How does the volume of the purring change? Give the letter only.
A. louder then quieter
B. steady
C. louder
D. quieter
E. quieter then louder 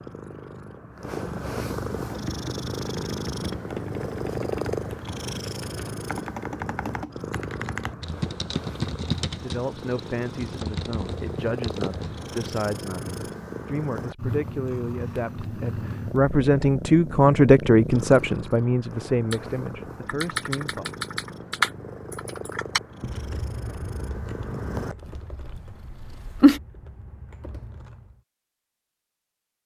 D.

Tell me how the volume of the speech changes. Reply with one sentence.
The loudness of the speech goes up, then down.